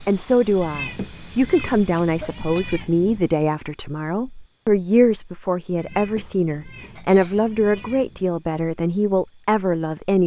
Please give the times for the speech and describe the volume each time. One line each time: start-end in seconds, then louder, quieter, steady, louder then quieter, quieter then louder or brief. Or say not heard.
0.1-10.2 steady.